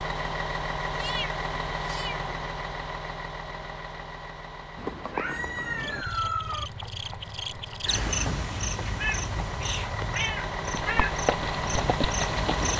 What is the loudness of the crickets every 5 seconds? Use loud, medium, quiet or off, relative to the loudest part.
off, loud, loud.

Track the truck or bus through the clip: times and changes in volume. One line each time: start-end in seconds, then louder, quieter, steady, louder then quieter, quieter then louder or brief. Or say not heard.
0.0-12.7 quieter then louder.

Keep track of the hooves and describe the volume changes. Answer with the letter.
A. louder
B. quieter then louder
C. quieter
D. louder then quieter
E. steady
B.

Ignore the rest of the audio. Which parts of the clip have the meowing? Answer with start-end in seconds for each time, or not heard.
0.9-2.5, 5.1-6.7, 8.9-11.2.